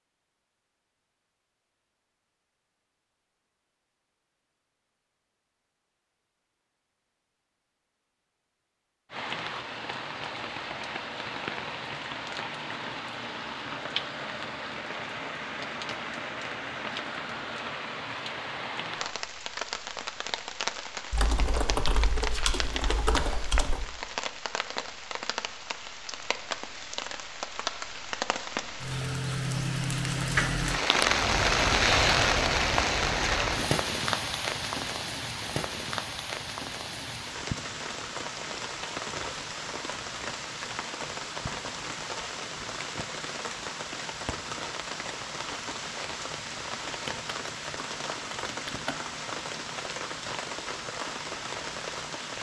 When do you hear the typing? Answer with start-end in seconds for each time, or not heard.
21.1-23.9, 47.0-49.0.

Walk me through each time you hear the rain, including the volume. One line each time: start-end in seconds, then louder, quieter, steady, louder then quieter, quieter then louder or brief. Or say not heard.
9.1-52.3 louder then quieter.